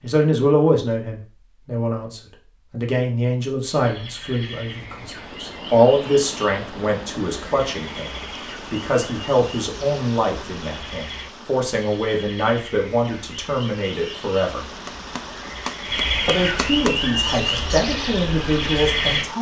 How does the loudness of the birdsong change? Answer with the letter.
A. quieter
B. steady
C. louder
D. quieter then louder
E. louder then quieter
C.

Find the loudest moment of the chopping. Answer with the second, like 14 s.
17 s.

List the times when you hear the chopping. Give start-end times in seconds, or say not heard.
14.8-17.0.